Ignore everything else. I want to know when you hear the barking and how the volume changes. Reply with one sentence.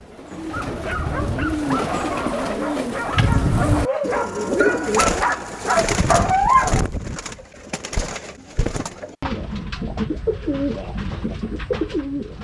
You can hear the barking from 0.5 to 6.8 s, getting louder.